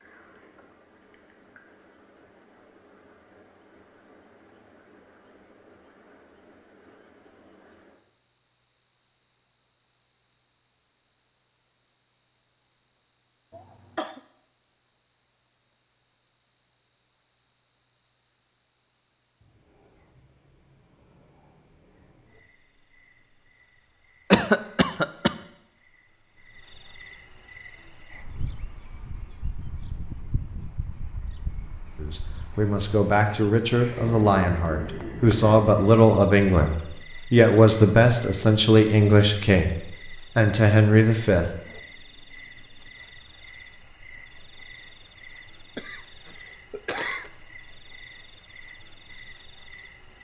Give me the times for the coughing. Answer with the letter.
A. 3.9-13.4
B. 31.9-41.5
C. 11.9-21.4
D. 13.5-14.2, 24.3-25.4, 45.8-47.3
D.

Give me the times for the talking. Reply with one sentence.
You can hear the talking from 31.9 to 41.5 s.